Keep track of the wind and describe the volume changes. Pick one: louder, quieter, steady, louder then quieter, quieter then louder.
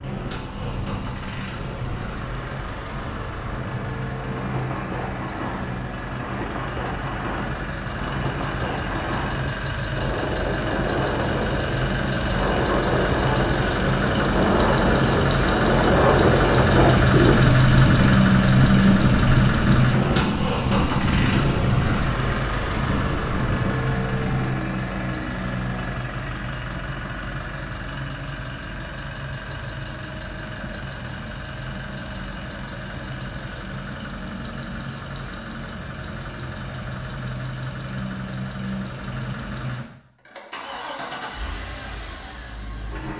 louder then quieter.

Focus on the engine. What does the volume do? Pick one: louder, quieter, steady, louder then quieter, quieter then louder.
louder then quieter.